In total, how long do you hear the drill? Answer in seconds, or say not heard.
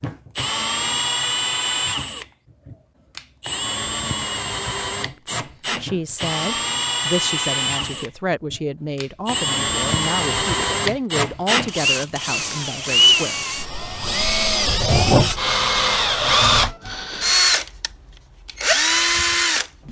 20 s.